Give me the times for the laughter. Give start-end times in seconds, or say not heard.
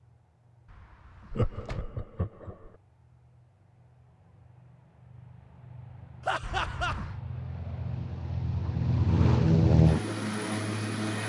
1.3-2.8, 6.2-7.0.